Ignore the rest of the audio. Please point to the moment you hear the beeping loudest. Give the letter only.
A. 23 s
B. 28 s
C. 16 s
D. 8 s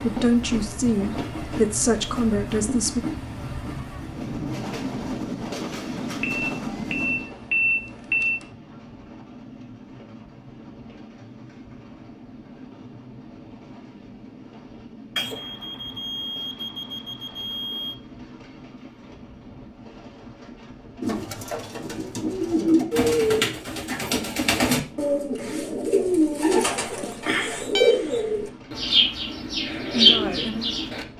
D.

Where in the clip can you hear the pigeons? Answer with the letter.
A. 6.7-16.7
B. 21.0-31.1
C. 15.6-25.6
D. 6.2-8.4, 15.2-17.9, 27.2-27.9
B.